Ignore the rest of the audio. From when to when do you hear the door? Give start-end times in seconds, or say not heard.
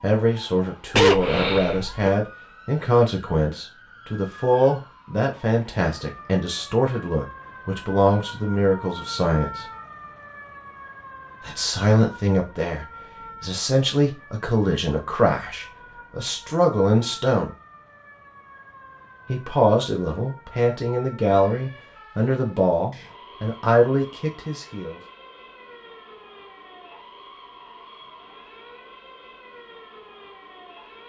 not heard.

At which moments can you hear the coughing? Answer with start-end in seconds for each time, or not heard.
0.9-2.1.